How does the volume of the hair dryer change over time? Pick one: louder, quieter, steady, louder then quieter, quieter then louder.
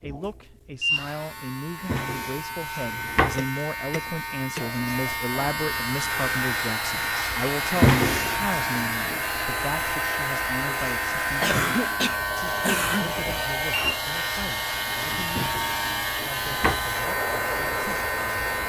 steady.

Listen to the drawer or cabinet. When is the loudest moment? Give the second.
8 s.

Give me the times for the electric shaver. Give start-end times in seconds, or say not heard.
0.0-18.6.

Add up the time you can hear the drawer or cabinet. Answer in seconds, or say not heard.
4 s.